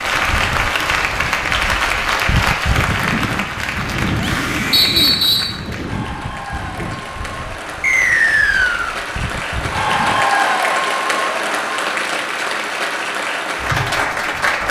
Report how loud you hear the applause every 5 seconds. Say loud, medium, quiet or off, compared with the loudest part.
loud, medium, loud.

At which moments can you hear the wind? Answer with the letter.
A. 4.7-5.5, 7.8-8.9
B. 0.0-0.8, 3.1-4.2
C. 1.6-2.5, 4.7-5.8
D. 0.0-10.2
D.